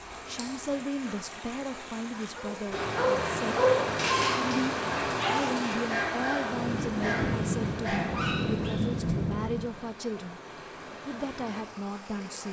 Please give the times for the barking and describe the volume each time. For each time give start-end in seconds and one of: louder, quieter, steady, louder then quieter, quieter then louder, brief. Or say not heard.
2.4-8.8 quieter.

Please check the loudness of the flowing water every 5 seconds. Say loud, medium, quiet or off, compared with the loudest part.
loud, loud, medium.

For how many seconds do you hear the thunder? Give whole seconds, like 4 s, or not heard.
3 s.